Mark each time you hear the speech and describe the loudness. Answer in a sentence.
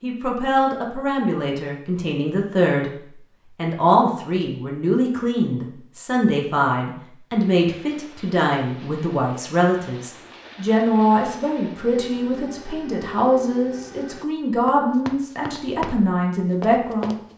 The speech can be heard from 0.0 to 17.1 s, at a steady volume.